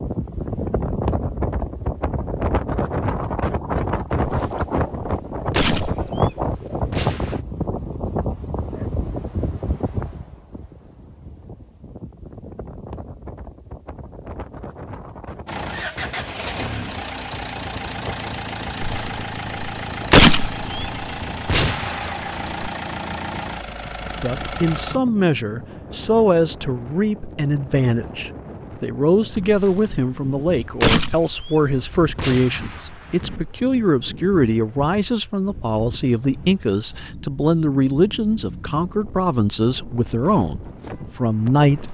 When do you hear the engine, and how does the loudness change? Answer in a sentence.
You can hear the engine from 15.4 to 25.0 s, at a steady volume.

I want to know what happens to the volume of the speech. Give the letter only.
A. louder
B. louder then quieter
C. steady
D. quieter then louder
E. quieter
C.